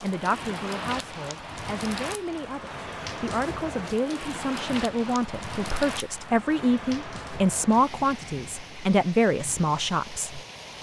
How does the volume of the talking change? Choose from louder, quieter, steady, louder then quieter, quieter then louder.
louder.